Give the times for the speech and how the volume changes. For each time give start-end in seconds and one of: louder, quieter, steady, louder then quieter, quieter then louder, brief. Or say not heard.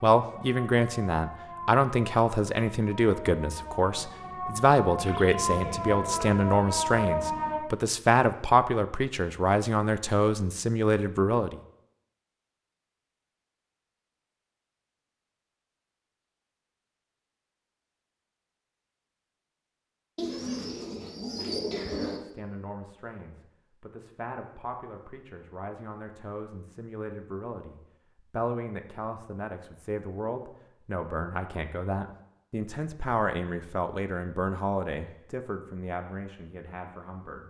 0.0-11.6 steady
22.1-37.4 louder.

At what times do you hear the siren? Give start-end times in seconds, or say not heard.
0.1-7.6.